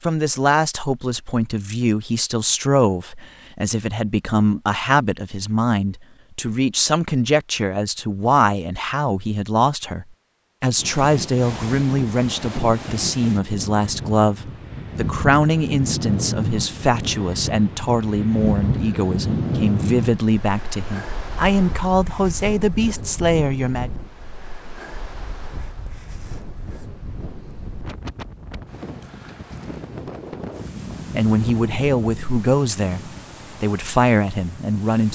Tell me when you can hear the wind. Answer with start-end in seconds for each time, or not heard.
10.8-35.1.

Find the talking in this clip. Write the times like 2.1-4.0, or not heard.
0.0-23.9, 31.1-35.1.